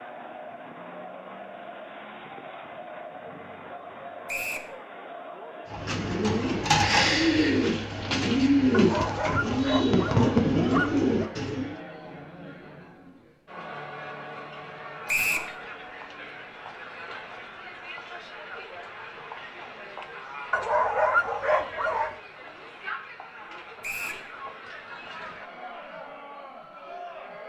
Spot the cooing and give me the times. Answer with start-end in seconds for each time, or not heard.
5.7-11.8.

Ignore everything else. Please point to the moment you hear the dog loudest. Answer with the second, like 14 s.
21 s.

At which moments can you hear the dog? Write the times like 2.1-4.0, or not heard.
8.7-11.3, 20.5-22.1.